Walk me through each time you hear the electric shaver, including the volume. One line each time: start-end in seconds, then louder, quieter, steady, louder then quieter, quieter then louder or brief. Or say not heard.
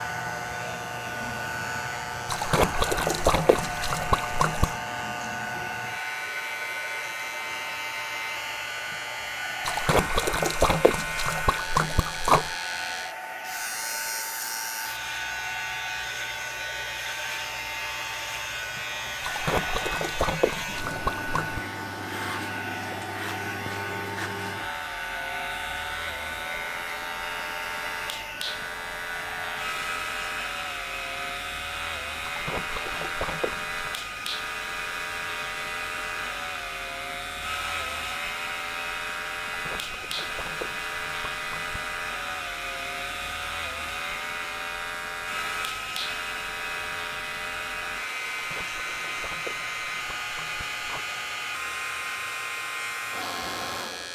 0.0-54.0 steady.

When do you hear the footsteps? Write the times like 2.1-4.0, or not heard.
not heard.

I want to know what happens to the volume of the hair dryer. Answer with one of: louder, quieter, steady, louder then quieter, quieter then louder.
steady.